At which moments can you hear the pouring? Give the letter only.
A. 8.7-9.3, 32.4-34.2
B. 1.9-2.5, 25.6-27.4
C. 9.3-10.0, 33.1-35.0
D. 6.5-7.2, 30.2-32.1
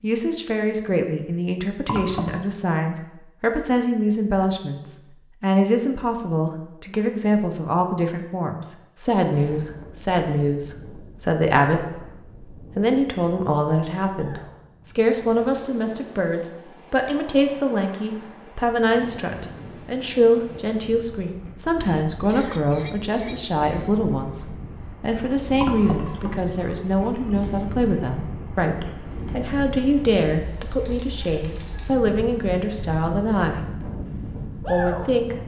B.